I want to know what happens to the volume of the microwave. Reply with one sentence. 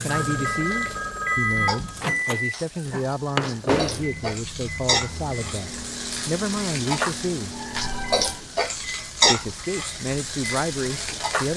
The volume of the microwave goes down.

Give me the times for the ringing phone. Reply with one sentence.
The ringing phone can be heard from 0.1 to 2.0 s and from 7.8 to 8.4 s.